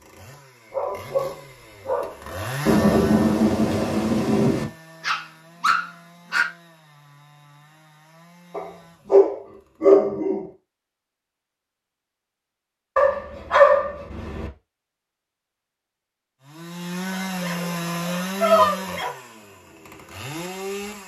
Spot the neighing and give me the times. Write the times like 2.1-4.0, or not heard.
not heard.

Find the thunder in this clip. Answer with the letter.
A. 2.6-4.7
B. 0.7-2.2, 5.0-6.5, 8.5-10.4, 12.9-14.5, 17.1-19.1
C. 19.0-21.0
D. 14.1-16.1
A.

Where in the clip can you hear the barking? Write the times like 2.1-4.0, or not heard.
0.7-2.2, 5.0-6.5, 8.5-10.4, 12.9-14.5, 17.1-19.1.